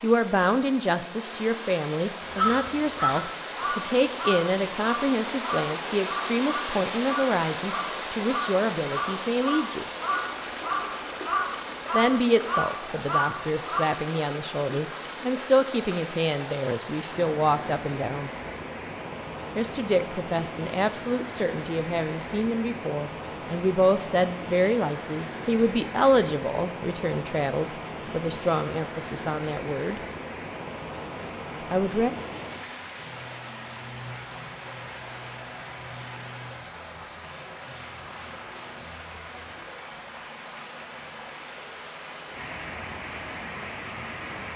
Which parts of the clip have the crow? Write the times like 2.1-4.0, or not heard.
2.2-13.8.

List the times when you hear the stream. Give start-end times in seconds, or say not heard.
0.0-44.5.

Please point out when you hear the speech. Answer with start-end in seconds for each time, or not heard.
0.0-9.8, 11.9-18.3, 19.6-30.0, 31.7-32.1.